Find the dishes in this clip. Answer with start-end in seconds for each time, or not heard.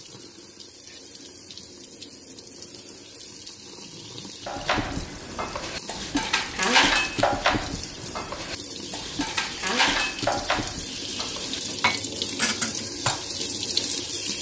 4.5-13.8.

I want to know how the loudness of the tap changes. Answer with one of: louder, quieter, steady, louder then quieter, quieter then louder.
louder.